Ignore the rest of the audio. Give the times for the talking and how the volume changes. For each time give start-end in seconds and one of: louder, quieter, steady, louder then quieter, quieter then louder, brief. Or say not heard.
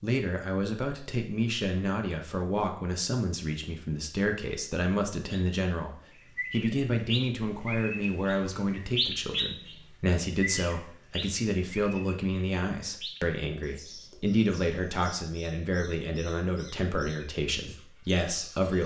0.0-18.8 steady.